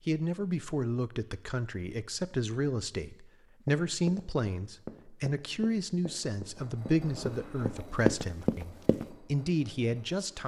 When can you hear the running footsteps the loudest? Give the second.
8 s.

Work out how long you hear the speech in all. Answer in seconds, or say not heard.
10 s.